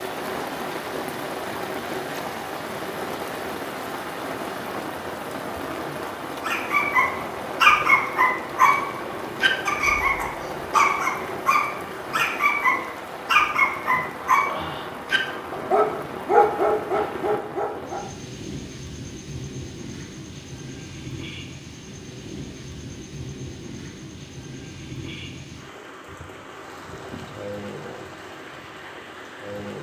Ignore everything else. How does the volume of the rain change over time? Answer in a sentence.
The volume of the rain goes down.